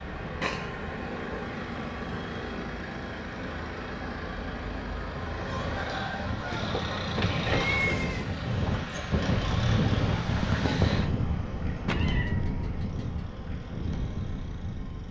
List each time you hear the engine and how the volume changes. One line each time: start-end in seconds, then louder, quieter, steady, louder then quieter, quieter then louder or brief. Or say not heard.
0.0-15.0 quieter.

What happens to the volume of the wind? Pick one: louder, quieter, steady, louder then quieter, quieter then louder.
louder then quieter.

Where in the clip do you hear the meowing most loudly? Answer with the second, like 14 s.
8 s.